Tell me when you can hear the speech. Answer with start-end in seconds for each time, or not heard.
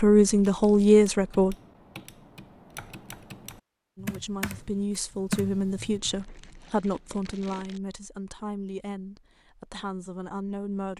0.0-1.6, 4.0-10.9.